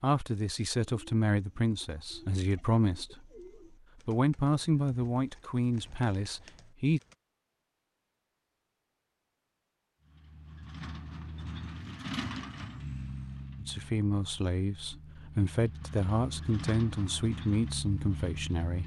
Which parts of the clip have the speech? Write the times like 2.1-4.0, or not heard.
0.0-3.2, 4.0-7.0, 13.6-18.8.